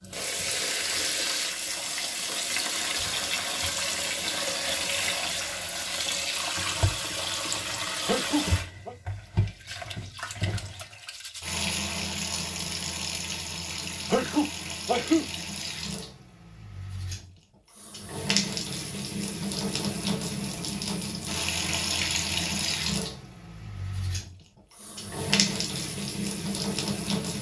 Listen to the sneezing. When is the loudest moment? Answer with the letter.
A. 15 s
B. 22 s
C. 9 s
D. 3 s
A.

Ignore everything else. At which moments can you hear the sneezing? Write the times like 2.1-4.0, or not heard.
8.1-8.9, 14.1-15.2.